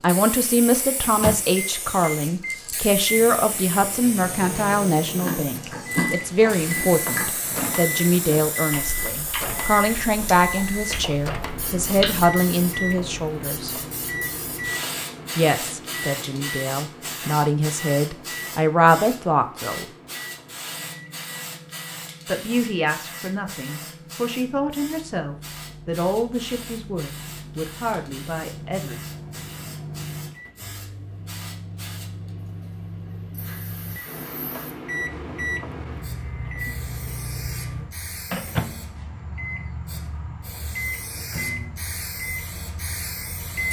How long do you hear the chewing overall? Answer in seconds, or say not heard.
7 s.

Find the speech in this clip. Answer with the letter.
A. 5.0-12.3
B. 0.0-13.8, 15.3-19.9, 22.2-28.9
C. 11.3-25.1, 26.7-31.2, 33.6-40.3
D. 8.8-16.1
B.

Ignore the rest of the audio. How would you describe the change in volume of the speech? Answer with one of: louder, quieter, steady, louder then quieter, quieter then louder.
quieter.